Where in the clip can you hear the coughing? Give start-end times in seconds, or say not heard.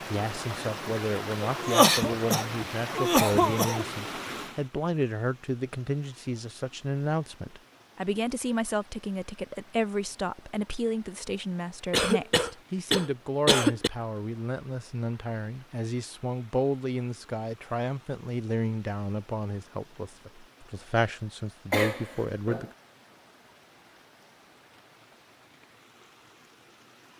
1.4-3.9, 11.9-13.9, 21.7-22.7.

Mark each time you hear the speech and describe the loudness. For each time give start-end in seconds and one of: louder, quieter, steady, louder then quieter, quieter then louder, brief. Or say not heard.
0.1-22.6 steady.